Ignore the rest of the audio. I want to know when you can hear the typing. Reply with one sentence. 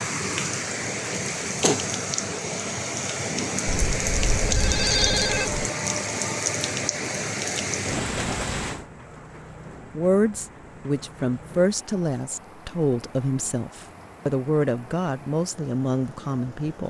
The typing can't be heard in this clip.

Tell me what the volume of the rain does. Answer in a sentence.
The volume of the rain goes down.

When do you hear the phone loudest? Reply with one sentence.
The loudest moment of the phone is at 5 seconds.